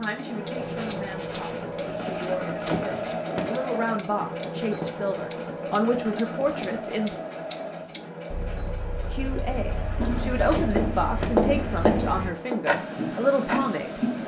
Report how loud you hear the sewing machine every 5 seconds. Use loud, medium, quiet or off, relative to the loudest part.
loud, loud, medium.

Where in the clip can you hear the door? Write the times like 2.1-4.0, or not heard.
2.6-3.6, 10.5-11.4.